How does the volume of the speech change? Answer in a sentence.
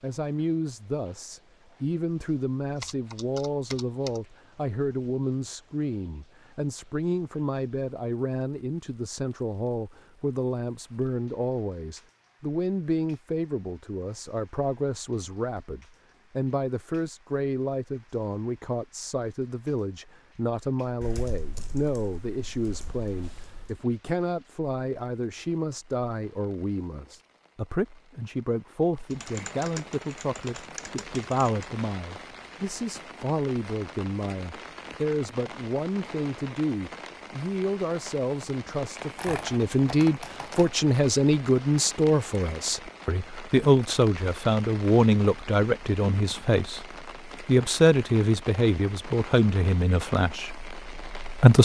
The volume of the speech goes up.